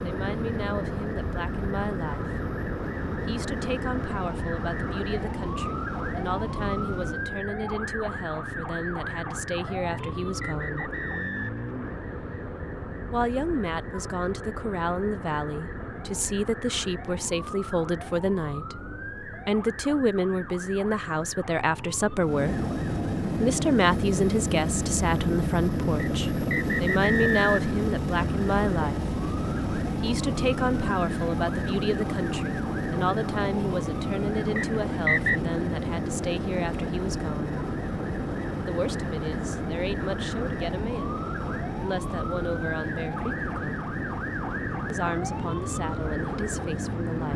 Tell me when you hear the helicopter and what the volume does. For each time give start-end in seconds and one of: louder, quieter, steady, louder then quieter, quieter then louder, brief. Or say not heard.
0.0-7.3 steady
22.1-47.3 quieter.